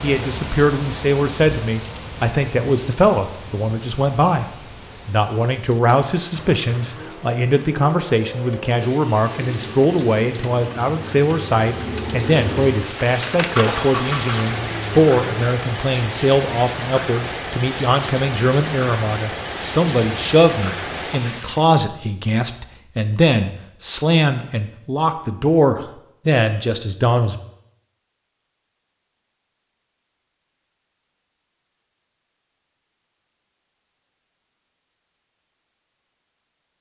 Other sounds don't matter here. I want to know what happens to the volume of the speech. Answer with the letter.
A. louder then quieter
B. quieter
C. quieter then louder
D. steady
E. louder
D.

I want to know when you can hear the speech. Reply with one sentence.
The speech can be heard from 0.0 to 27.4 s.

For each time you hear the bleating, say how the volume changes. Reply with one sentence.
You can't hear the bleating here.